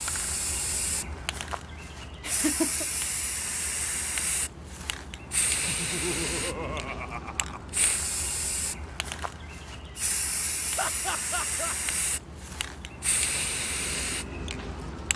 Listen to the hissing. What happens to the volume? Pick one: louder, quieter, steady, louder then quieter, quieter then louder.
steady.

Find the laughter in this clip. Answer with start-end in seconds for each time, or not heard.
2.2-2.9, 5.7-7.7, 10.8-11.8.